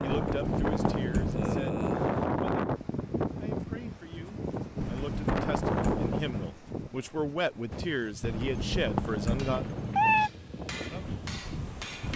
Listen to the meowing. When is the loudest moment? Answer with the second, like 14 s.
10 s.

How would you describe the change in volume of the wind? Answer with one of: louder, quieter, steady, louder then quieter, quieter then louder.
quieter.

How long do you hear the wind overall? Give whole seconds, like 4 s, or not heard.
12 s.